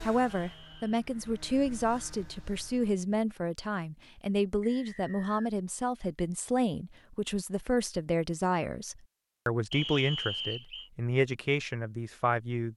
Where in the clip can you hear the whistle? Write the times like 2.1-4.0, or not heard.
0.4-0.8, 4.6-5.5, 9.7-10.9.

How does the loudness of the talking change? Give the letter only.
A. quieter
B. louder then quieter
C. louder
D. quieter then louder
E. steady
E.